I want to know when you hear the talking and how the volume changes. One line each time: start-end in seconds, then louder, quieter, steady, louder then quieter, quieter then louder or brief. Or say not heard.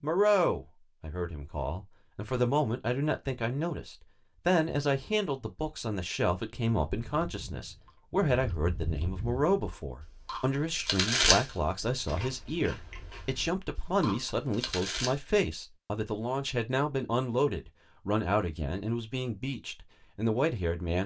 0.0-21.0 steady.